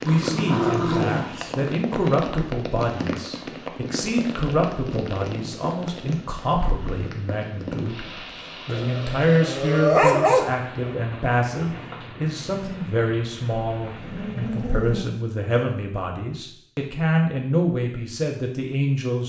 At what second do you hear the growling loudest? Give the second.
10 s.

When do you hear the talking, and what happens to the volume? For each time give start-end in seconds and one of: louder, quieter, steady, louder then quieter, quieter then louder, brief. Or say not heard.
0.0-19.2 steady.